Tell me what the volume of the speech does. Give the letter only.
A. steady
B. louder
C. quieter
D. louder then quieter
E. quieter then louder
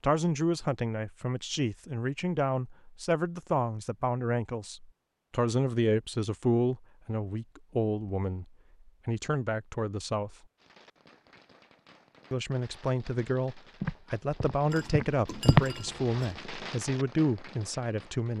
A.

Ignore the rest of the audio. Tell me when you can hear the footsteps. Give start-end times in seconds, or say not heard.
13.8-15.7.